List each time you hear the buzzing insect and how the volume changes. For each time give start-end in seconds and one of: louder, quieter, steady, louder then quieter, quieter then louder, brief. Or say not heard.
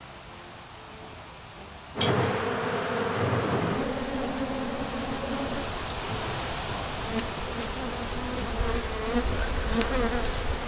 1.9-10.6 quieter then louder.